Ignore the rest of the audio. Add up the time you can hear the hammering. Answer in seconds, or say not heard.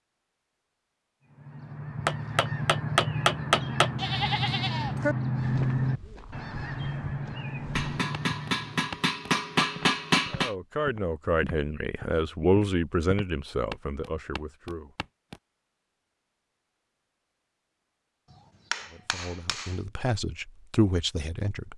6 s.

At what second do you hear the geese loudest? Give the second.
6 s.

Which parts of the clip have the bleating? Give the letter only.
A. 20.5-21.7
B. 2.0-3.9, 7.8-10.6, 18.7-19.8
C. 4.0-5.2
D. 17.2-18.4
C.